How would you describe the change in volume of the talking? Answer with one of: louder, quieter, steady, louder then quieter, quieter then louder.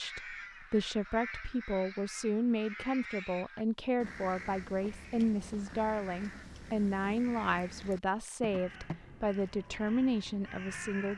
steady.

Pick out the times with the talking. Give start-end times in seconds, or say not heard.
0.0-11.1.